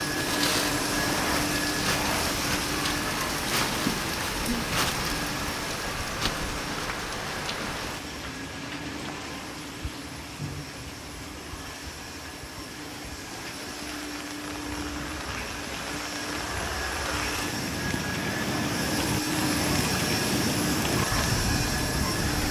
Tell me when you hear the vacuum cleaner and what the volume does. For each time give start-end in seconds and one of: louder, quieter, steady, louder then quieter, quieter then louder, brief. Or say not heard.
0.0-22.4 quieter then louder.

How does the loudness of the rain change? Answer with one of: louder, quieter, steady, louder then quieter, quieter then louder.
quieter then louder.